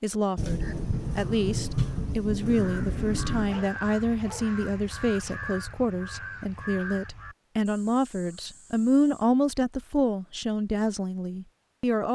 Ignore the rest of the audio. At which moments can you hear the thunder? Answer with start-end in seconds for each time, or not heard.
0.3-3.6.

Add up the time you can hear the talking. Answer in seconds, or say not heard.
12 s.